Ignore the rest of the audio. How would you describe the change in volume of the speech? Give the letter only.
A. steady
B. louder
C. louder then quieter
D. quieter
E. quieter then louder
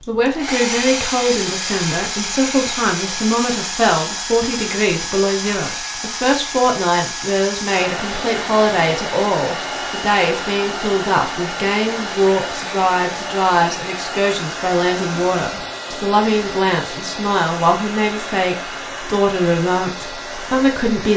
A.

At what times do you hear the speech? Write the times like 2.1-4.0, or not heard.
0.1-21.1.